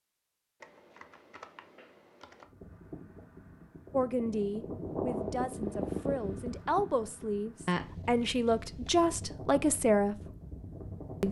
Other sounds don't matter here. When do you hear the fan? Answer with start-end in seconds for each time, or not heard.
2.4-11.2.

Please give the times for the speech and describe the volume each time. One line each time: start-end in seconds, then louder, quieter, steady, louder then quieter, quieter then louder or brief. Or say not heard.
3.9-10.2 louder.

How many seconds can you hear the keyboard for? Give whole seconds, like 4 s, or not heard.
3 s.